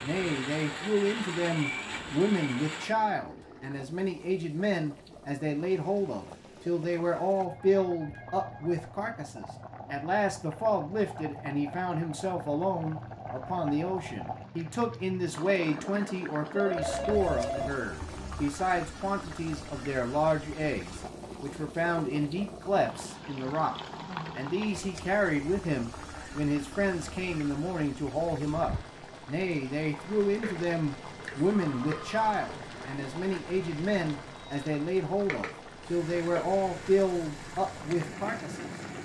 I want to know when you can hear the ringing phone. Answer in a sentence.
The ringing phone can be heard from 7.3 to 8.8 s, from 16.6 to 18.5 s and from 31.4 to 32.5 s.